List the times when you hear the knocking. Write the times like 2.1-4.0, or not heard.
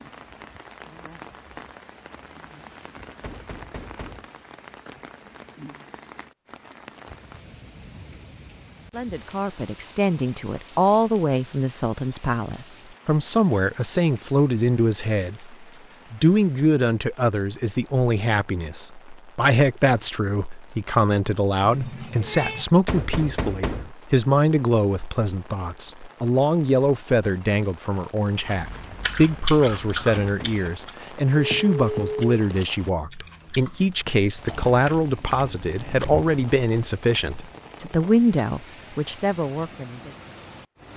3.2-4.3, 22.9-23.9, 30.1-30.6.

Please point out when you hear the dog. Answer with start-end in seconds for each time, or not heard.
not heard.